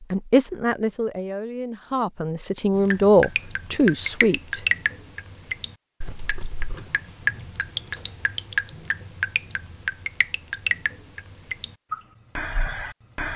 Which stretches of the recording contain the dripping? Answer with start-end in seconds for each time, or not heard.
2.8-13.3.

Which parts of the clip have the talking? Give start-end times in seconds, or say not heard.
0.1-4.6.